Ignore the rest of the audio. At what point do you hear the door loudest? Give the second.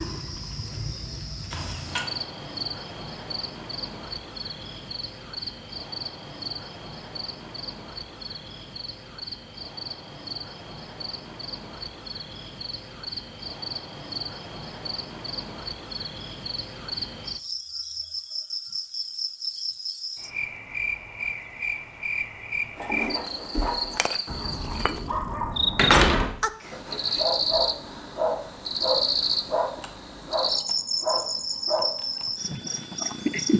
26 s.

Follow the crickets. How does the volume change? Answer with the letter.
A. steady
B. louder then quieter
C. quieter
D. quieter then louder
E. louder
E.